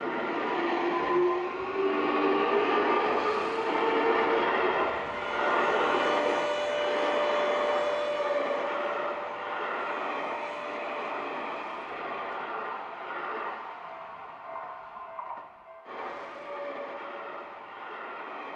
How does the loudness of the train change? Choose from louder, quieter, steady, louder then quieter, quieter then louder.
quieter.